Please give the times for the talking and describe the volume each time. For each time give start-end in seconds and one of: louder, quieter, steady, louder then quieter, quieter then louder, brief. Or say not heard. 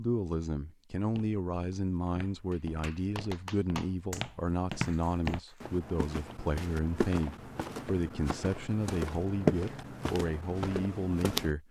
0.0-11.6 steady.